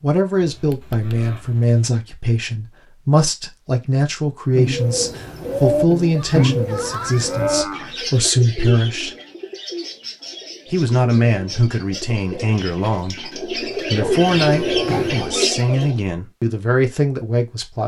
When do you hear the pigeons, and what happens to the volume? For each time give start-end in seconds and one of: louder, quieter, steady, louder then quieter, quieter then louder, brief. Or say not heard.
4.5-16.0 quieter then louder.